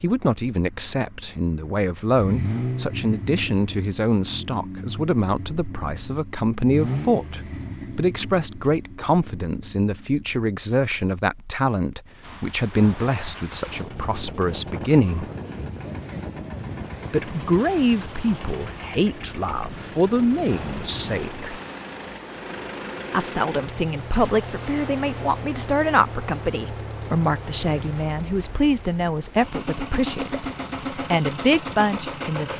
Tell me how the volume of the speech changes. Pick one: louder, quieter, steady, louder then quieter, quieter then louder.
steady.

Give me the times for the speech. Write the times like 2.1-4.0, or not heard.
0.0-15.2, 17.1-21.5, 23.1-32.5.